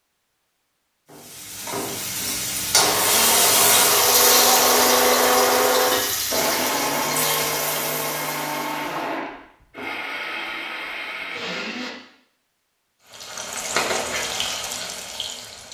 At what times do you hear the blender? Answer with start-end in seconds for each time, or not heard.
2.8-11.9.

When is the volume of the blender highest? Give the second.
5 s.